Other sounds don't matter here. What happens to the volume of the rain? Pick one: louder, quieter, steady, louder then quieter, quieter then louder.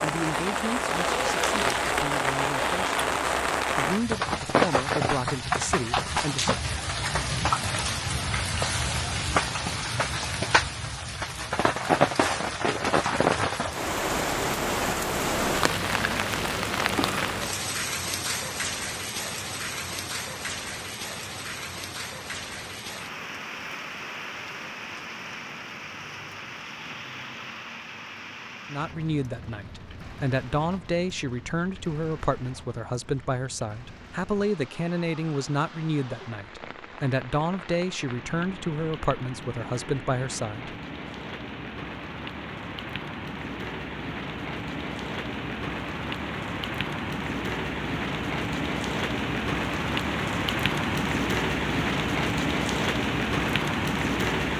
quieter then louder.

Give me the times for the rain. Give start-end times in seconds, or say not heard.
0.0-54.5.